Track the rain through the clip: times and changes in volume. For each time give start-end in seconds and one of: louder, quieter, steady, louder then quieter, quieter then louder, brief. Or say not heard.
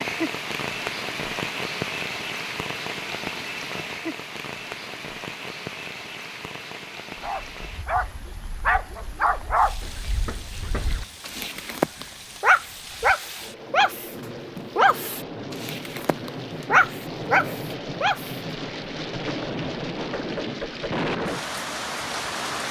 0.0-22.6 quieter then louder.